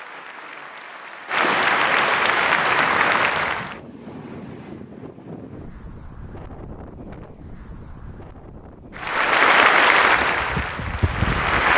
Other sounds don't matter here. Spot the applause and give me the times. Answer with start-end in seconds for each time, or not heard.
0.0-3.8, 8.9-11.7.